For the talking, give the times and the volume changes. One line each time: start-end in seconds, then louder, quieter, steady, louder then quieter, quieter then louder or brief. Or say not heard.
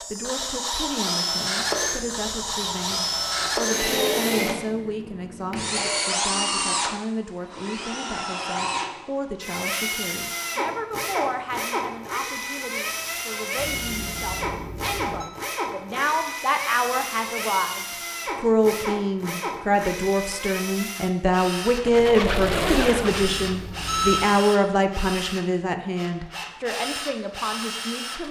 0.0-28.2 louder.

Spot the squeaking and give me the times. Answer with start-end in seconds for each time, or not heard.
21.9-23.3.